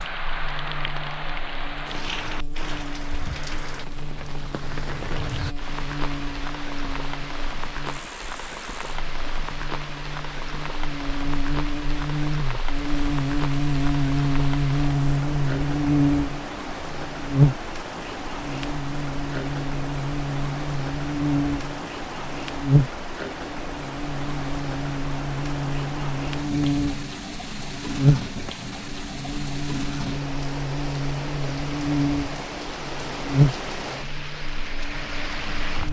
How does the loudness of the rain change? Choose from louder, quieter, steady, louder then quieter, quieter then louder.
steady.